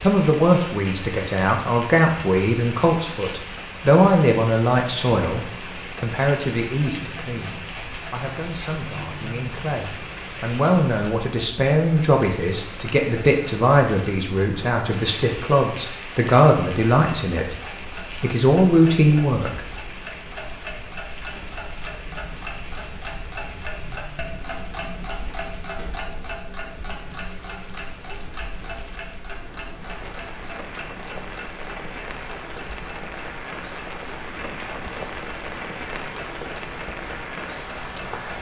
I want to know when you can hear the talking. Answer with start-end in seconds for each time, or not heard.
0.0-19.6.